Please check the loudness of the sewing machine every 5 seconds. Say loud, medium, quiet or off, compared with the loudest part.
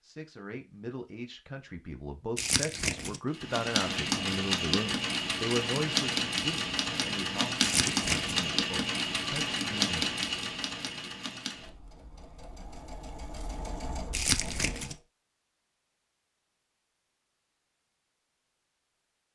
loud, loud, medium, off.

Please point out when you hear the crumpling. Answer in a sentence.
The crumpling can be heard from 2.4 to 3.2 s, from 7.6 to 8.4 s and from 14.1 to 14.9 s.